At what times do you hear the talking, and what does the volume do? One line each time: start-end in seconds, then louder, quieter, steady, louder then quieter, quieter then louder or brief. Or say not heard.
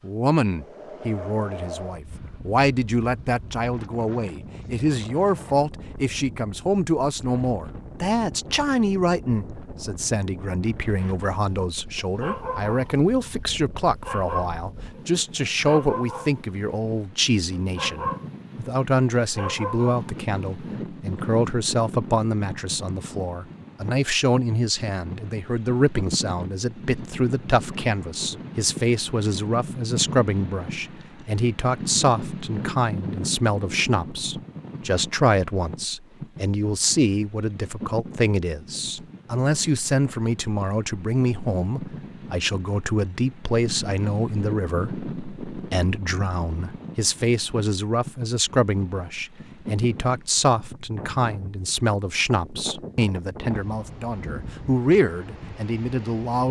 0.0-56.4 steady.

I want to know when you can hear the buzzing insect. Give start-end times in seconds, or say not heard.
not heard.